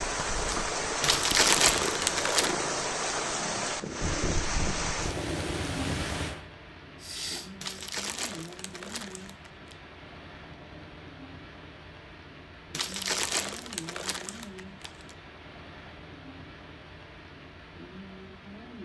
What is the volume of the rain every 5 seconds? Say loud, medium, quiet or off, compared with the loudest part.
loud, medium, quiet, quiet.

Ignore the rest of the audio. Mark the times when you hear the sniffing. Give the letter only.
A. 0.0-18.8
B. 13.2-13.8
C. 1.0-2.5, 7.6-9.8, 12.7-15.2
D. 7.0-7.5
D.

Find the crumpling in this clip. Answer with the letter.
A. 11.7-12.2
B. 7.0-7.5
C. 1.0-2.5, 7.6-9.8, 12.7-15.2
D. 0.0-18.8
C.